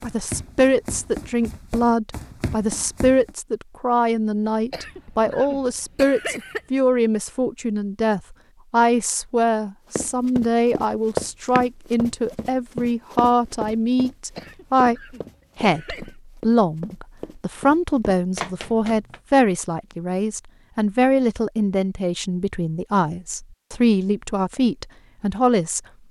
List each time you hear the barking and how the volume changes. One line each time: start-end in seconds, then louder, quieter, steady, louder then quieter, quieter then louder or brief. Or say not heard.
not heard.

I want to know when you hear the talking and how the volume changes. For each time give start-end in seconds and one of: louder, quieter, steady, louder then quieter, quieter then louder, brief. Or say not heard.
0.0-25.8 steady.